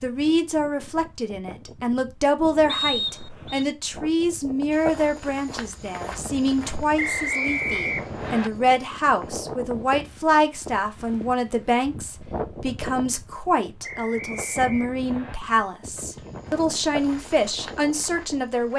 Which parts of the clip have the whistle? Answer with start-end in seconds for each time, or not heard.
2.6-3.6, 7.0-8.5, 13.8-15.3.